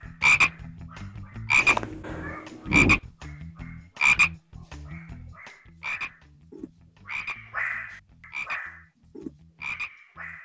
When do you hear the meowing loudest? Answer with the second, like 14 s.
3 s.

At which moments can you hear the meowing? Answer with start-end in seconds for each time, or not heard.
1.6-3.0.